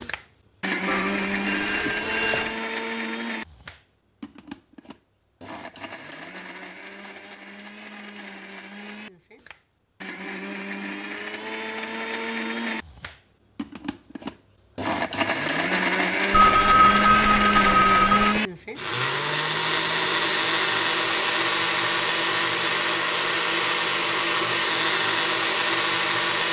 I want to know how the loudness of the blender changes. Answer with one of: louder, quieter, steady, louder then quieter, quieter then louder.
quieter then louder.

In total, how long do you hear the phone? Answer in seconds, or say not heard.
4 s.